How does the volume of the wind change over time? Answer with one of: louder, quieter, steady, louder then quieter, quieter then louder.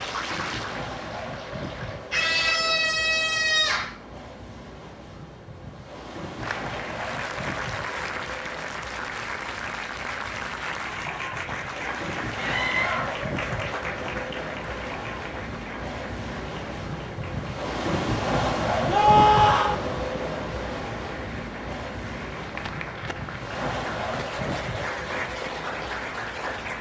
louder then quieter.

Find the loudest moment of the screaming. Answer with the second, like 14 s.
19 s.